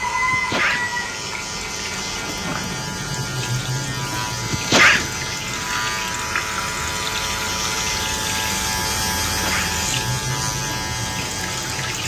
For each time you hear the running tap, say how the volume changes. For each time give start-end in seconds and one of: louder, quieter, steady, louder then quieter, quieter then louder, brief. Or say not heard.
0.0-12.0 steady.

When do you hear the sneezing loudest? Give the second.
5 s.